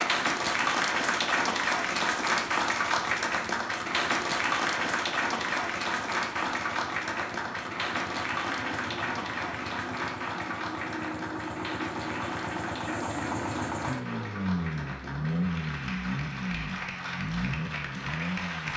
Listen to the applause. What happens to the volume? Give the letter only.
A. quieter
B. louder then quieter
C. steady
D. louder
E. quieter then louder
A.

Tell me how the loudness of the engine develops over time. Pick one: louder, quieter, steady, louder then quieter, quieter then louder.
louder.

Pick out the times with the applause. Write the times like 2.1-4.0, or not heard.
0.0-18.7.